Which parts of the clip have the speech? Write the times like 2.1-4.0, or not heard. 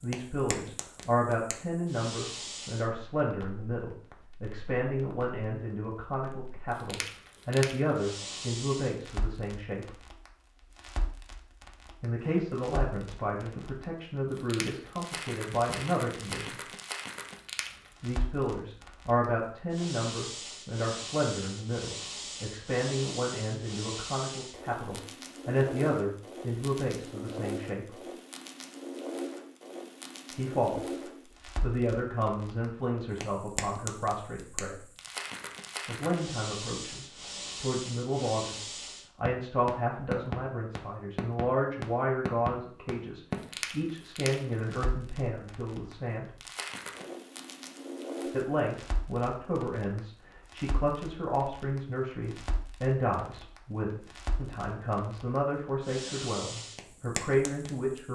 0.0-10.0, 12.0-16.6, 18.0-28.0, 30.4-34.8, 35.9-46.3, 48.2-58.1.